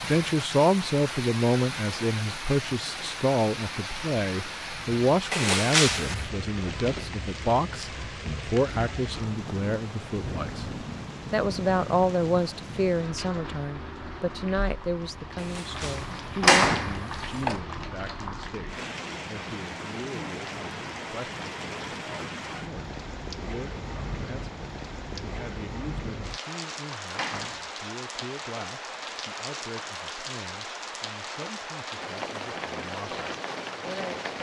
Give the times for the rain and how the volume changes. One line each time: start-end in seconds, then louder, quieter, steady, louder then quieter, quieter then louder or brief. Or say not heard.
0.0-34.3 steady.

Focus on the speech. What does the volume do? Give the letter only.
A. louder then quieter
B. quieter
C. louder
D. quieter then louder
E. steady
B.